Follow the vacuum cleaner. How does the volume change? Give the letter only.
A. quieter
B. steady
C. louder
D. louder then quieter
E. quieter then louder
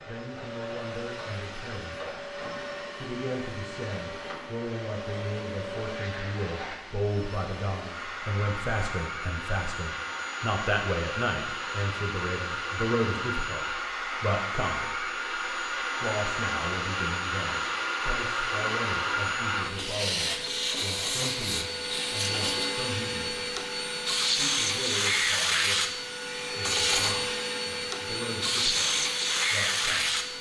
C.